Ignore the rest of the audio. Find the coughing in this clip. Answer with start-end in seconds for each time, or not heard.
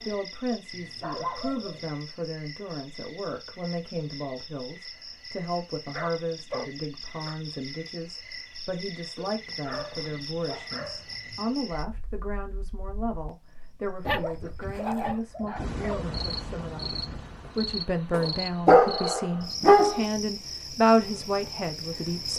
not heard.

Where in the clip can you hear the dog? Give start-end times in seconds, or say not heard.
0.7-1.9, 5.9-7.3, 9.2-11.4, 14.1-16.1, 18.1-20.1.